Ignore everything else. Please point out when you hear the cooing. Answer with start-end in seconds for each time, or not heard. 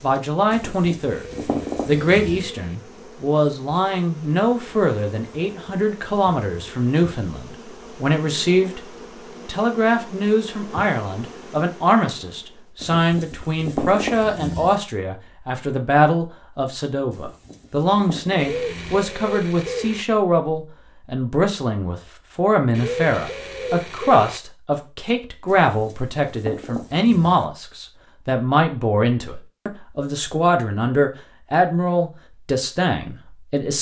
1.1-2.8, 18.4-20.1, 22.7-24.4.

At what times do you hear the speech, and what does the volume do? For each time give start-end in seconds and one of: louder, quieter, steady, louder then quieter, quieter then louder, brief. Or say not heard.
0.0-1.2 brief
1.9-8.8 steady
9.4-33.7 steady.